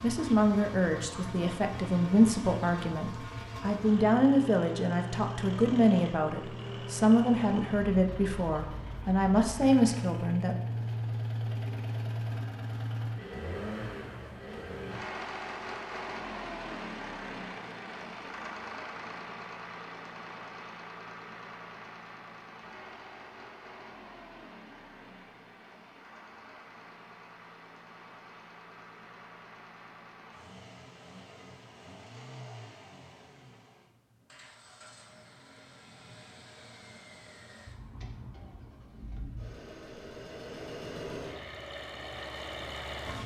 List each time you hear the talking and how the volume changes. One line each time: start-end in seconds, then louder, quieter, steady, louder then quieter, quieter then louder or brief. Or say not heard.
0.0-10.6 steady.